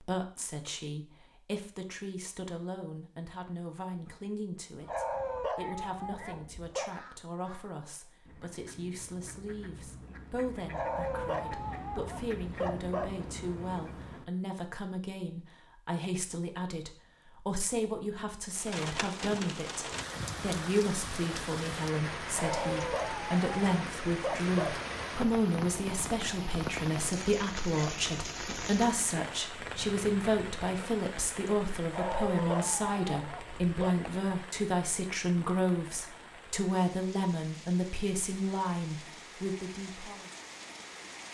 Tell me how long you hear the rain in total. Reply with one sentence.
The rain can be heard for 23 seconds in total.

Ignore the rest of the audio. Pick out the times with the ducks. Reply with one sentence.
The ducks can be heard from 5.5 to 14.2 s.